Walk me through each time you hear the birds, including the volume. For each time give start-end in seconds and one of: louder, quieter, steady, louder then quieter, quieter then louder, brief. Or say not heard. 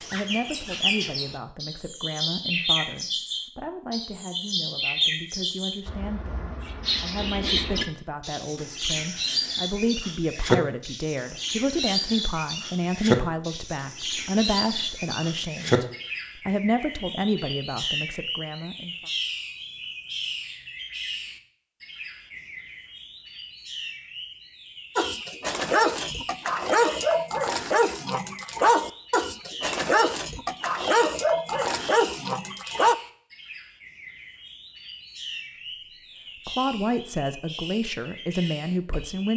0.0-39.3 quieter.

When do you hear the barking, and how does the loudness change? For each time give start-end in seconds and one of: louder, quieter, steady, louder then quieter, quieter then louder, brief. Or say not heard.
24.9-33.0 steady.